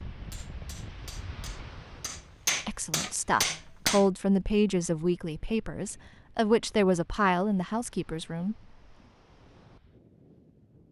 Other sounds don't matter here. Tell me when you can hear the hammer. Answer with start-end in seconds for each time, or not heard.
0.3-4.0.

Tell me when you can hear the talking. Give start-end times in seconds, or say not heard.
2.6-8.6.